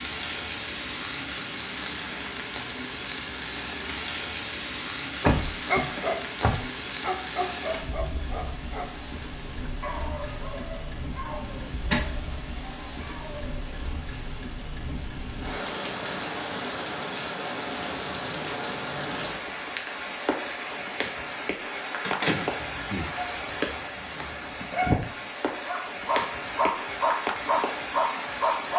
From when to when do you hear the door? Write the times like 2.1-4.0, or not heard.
5.2-6.6, 11.4-12.1, 22.0-23.1.